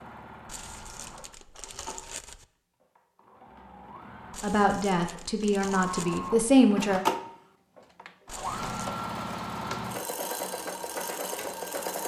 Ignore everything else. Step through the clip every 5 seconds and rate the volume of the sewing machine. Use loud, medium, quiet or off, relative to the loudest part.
quiet, loud, loud.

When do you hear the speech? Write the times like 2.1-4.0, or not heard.
4.4-7.0.